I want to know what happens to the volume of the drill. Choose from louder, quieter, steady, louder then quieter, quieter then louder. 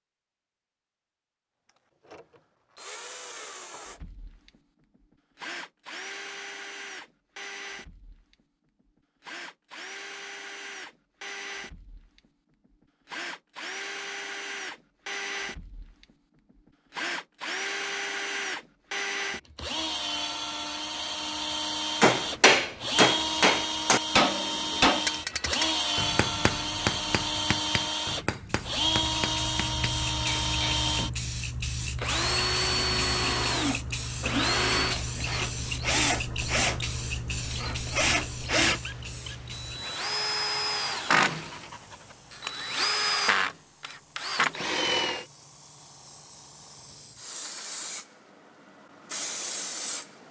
louder.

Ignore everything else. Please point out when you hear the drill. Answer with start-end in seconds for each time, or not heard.
2.0-45.2.